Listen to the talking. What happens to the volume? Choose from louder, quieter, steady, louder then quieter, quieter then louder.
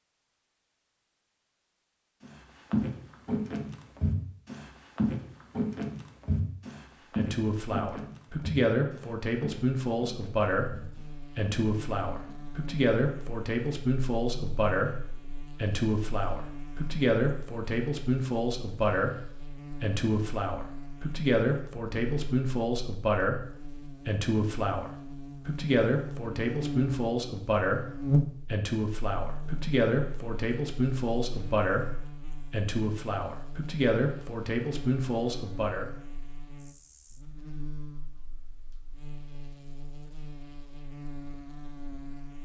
steady.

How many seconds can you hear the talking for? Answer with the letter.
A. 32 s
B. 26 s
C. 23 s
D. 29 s
D.